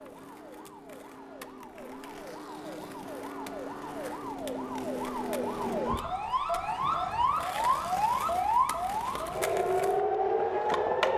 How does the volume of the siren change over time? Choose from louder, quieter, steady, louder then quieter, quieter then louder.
louder.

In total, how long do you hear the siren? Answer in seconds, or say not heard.
11 s.